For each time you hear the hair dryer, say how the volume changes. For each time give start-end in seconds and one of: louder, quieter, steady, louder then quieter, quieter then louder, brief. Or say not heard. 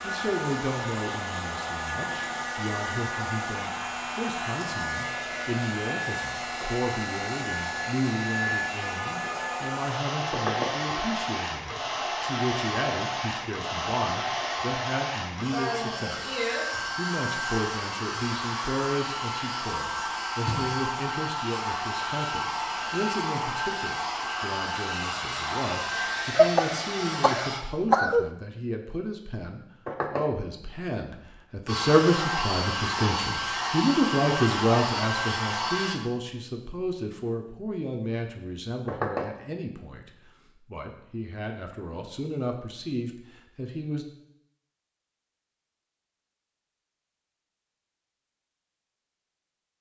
0.0-27.6 steady
31.6-36.0 steady.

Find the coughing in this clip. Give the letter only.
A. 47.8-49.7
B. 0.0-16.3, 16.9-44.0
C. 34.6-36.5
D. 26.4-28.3
D.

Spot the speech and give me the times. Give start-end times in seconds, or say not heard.
0.0-16.3, 16.9-44.0.